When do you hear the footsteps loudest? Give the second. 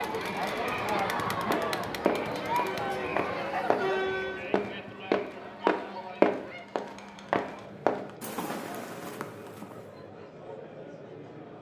6 s.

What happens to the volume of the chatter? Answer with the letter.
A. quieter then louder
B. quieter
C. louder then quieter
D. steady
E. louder
B.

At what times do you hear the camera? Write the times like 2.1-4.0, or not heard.
not heard.